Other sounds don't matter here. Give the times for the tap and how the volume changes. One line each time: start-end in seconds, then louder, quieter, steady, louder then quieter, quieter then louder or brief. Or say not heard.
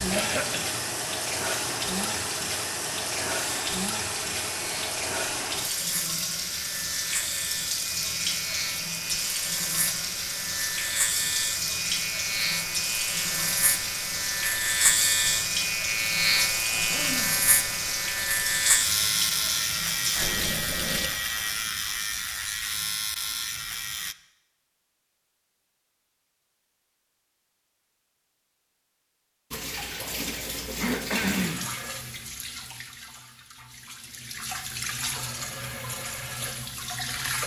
0.0-21.1 steady
29.5-37.4 quieter then louder.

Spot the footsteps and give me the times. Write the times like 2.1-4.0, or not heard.
not heard.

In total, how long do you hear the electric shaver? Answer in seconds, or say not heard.
24 s.